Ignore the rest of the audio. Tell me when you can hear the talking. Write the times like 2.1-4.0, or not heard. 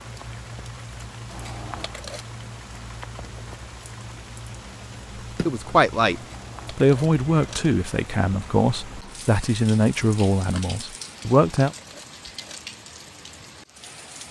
5.5-11.8.